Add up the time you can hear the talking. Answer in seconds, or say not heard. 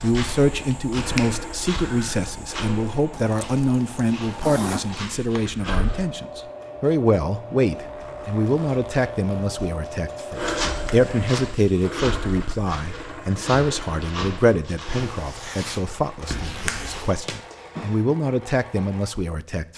20 s.